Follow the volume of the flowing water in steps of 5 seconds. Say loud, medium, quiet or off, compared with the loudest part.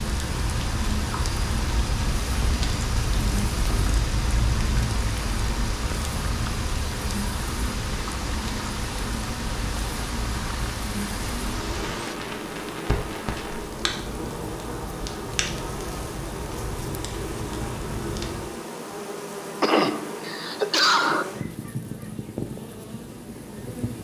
loud, loud, loud, off, off.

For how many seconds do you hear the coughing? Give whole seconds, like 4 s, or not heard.
2 s.